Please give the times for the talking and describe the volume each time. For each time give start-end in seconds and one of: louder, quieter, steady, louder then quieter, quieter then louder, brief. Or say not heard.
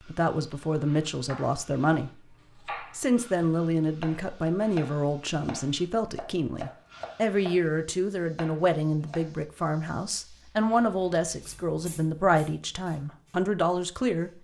0.1-2.1 brief
2.8-14.3 steady.